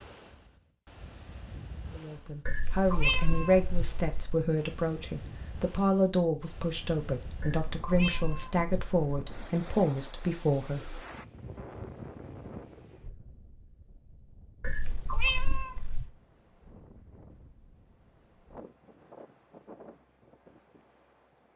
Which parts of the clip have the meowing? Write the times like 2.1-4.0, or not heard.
2.5-4.5, 7.4-9.3, 14.6-16.1.